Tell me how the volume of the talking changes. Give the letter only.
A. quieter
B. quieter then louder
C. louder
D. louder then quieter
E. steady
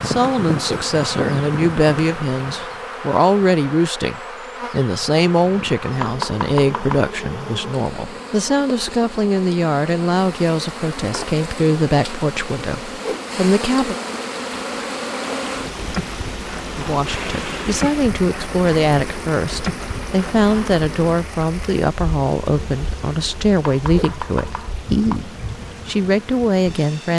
E.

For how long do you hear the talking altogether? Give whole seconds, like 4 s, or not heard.
24 s.